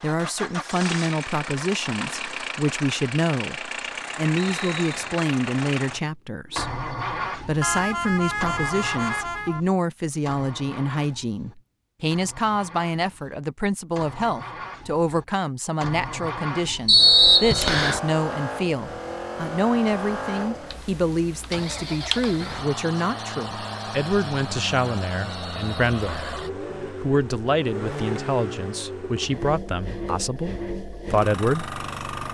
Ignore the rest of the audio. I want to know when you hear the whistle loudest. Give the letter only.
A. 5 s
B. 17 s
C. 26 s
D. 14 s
B.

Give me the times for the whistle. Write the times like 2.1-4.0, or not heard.
4.3-5.1, 16.9-18.0, 25.3-26.4.